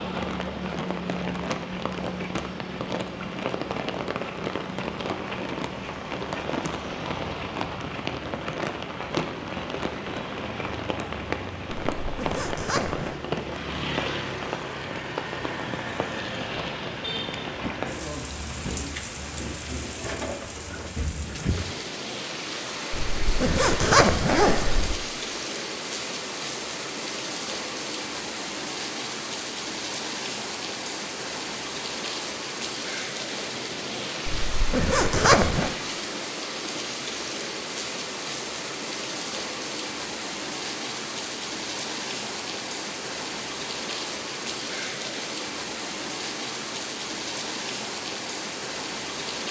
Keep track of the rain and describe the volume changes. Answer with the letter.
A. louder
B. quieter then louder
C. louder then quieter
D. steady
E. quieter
D.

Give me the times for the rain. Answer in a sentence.
You can hear the rain from 0.0 to 49.4 s.